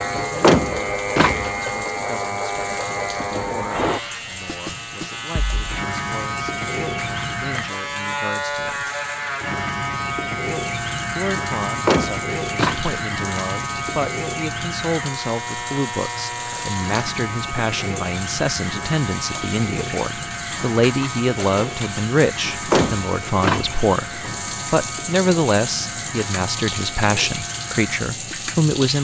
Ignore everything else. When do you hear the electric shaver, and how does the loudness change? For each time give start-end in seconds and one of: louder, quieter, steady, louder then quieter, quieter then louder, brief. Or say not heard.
0.0-29.0 quieter.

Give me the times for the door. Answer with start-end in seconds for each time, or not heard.
0.1-1.7, 11.7-12.9, 22.6-24.3.